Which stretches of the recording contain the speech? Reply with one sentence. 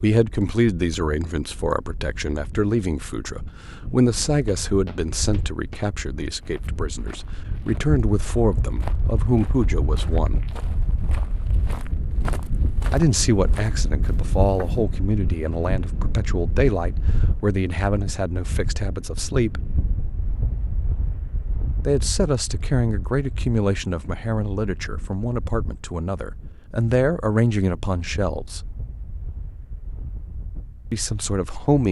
You can hear the speech from 0.0 to 10.4 s, from 12.9 to 19.6 s, from 21.9 to 28.6 s and from 30.9 to 31.8 s.